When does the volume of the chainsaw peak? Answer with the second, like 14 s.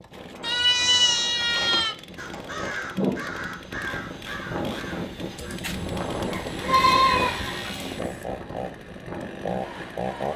10 s.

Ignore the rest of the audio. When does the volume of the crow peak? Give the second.
3 s.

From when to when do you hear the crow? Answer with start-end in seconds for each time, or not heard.
2.1-7.7.